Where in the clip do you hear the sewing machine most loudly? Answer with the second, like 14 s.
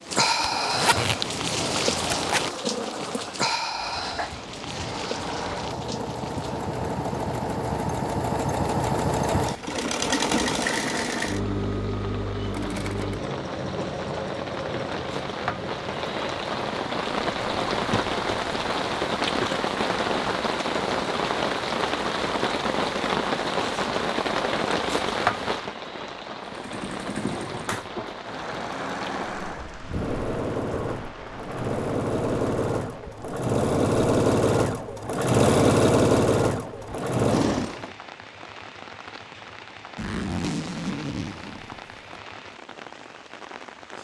36 s.